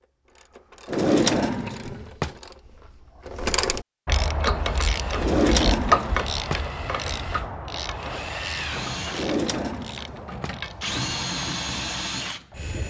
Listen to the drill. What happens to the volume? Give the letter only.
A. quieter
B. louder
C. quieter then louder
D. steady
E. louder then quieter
B.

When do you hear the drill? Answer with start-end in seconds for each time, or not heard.
4.4-12.8.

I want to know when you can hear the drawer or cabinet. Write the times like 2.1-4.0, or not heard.
0.8-2.4, 5.2-6.6, 9.1-10.6.